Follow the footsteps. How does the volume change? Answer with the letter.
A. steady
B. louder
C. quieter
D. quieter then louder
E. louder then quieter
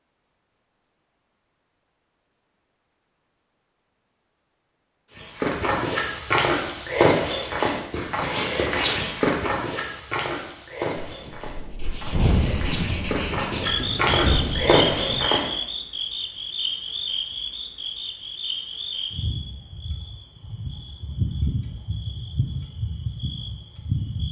D.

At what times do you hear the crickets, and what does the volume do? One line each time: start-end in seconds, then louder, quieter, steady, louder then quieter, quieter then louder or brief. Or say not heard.
11.8-24.2 quieter.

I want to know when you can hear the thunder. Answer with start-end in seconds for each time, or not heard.
11.1-15.3.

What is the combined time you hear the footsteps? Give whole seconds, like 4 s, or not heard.
10 s.